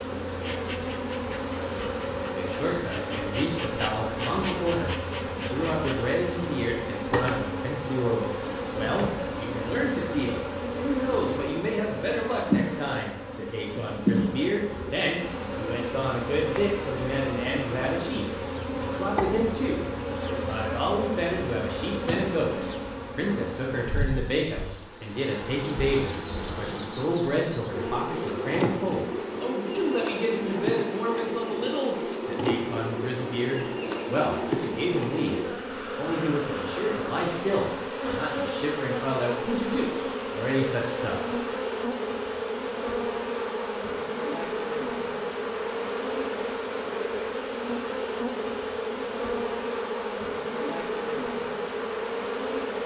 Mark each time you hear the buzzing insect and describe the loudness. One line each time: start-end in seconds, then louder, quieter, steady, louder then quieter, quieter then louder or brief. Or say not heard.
0.0-52.8 steady.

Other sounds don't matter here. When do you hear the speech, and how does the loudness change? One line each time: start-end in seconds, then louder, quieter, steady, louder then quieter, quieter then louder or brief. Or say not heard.
2.4-41.4 steady.